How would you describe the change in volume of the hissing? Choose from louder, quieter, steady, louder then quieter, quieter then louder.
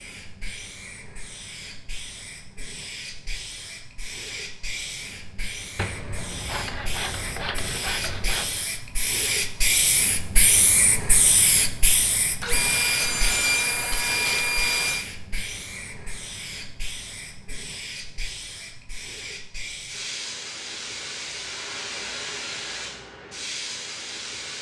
louder then quieter.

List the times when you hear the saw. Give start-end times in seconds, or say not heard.
5.8-8.6, 12.4-15.1.